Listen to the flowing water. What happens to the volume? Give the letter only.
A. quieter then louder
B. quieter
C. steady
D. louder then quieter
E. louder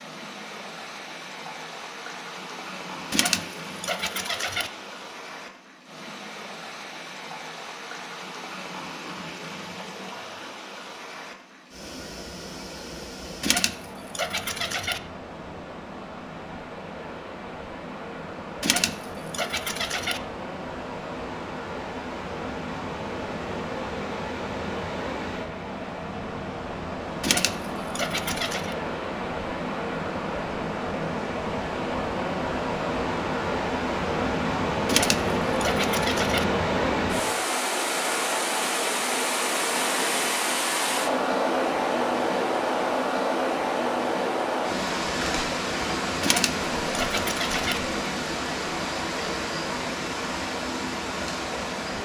E.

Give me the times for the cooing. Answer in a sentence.
You can hear the cooing from 3.1 to 4.7 s, from 13.4 to 15.0 s, from 18.6 to 20.2 s, from 27.2 to 28.8 s, from 34.9 to 36.5 s and from 46.2 to 47.8 s.